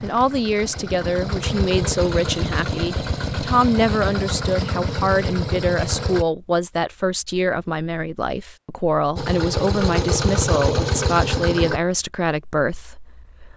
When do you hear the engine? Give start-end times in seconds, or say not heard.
0.0-6.2, 9.2-11.8.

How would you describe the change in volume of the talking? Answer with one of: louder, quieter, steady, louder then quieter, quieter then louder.
steady.